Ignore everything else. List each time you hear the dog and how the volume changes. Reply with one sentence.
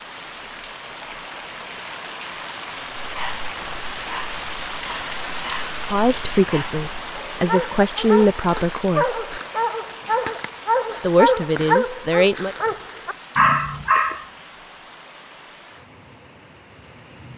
The dog can be heard from 3.0 to 14.2 s, getting louder.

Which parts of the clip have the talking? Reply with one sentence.
The talking can be heard from 5.8 to 9.4 s and from 11.0 to 12.6 s.